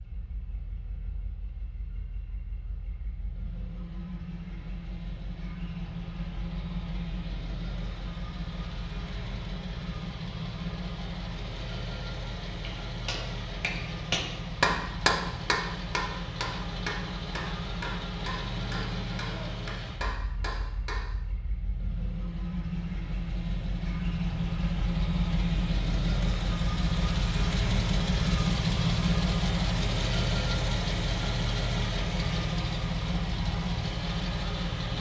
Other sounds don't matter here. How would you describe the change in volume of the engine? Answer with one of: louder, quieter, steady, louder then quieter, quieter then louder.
louder.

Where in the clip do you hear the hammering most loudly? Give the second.
15 s.